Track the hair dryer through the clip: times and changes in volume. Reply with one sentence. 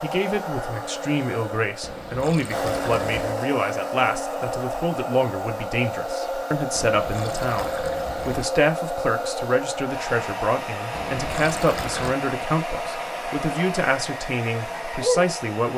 The hair dryer can be heard from 0.0 to 15.7 s, at a steady volume.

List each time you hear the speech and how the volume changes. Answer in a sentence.
You can hear the speech from 0.0 to 15.7 s, at a steady volume.